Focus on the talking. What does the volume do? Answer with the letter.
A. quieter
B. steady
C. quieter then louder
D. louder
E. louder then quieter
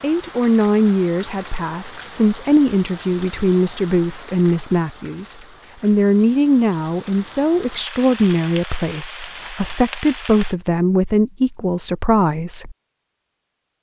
B.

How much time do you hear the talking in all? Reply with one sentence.
The talking can be heard for 13 seconds in total.